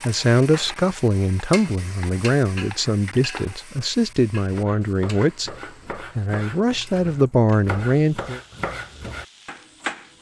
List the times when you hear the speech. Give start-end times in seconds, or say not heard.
0.0-8.4.